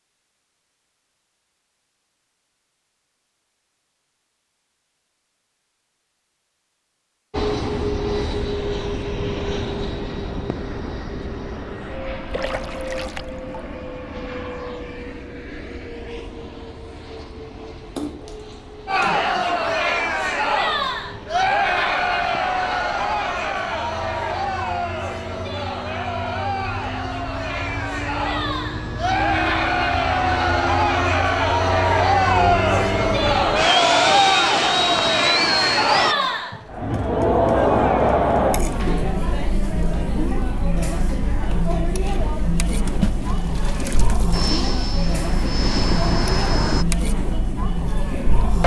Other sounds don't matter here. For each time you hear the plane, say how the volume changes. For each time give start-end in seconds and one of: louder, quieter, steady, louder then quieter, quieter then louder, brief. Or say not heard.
7.3-36.1 quieter then louder
44.3-46.9 brief.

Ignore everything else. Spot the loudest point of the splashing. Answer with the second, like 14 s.
43 s.